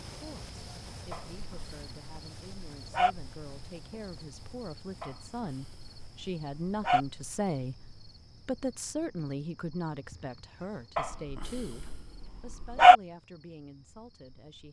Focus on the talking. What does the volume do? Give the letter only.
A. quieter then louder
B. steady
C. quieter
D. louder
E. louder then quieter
E.